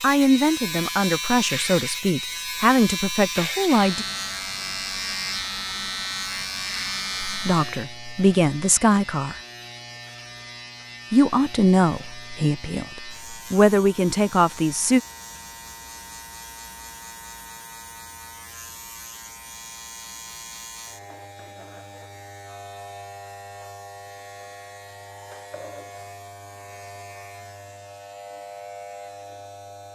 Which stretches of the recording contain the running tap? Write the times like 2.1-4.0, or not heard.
not heard.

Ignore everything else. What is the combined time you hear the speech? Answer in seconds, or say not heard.
10 s.